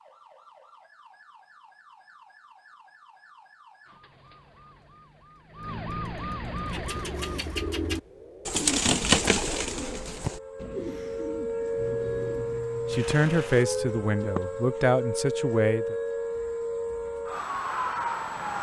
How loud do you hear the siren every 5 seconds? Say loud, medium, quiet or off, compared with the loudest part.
quiet, medium, loud, loud.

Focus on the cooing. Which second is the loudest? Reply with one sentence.
The volume of the cooing peaks at 9 seconds.